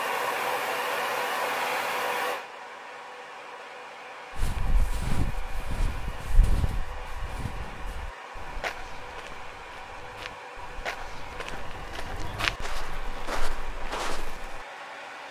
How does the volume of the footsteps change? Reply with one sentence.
The volume of the footsteps goes down, then up.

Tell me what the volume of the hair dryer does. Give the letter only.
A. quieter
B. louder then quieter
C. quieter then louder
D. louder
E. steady
A.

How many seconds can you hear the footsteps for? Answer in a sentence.
The footsteps can be heard for 10 seconds in total.